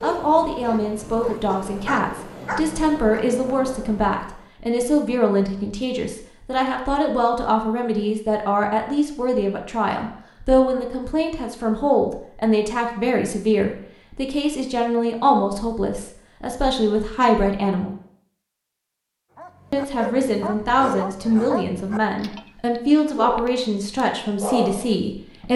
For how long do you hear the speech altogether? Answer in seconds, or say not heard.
24 s.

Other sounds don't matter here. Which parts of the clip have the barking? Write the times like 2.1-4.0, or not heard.
0.0-3.2, 19.4-25.5.